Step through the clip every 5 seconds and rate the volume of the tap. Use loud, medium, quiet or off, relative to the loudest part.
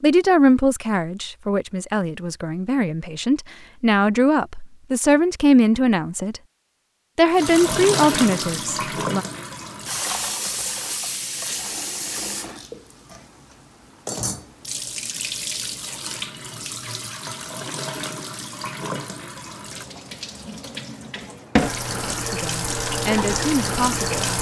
off, loud, medium, medium, loud.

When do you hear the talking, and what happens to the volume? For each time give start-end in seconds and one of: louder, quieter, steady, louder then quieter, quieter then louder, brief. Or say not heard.
0.0-6.4 quieter then louder
7.2-9.2 brief
22.3-24.3 brief.